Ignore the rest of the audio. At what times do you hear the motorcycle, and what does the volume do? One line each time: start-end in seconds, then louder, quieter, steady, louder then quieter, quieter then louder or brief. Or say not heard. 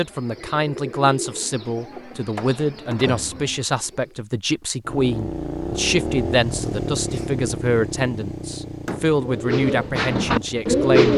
4.8-10.8 quieter.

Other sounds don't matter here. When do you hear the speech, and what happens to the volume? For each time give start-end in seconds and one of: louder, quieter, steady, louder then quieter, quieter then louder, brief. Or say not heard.
0.0-11.1 steady.